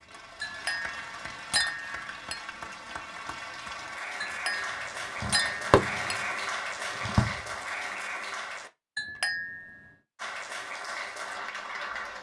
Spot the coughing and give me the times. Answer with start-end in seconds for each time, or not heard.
not heard.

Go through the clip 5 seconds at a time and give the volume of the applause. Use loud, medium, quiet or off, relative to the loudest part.
medium, loud, loud.